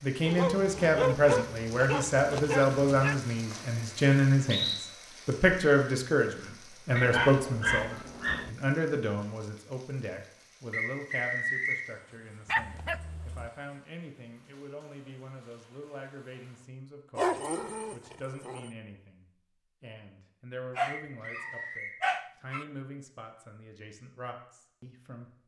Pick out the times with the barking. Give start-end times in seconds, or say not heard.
0.2-3.2, 7.0-8.5, 12.4-13.5, 17.1-18.7, 20.8-22.6.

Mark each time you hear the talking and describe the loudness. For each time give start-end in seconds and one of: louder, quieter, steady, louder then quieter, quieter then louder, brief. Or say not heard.
0.0-25.4 quieter.